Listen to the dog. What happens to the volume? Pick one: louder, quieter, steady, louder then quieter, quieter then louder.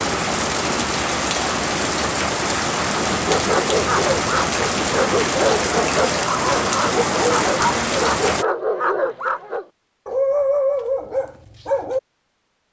steady.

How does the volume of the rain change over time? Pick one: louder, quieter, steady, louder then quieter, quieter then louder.
steady.